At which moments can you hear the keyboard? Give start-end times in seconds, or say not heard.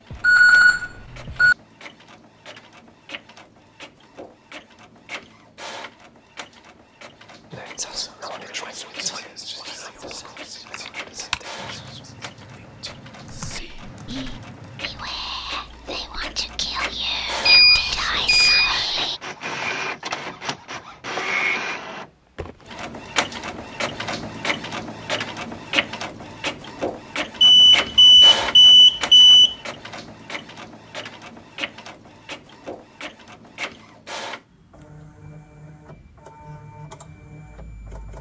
10.0-15.1.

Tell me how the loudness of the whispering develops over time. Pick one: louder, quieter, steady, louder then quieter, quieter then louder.
quieter then louder.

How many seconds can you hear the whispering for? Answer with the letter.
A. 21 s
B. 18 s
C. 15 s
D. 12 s
D.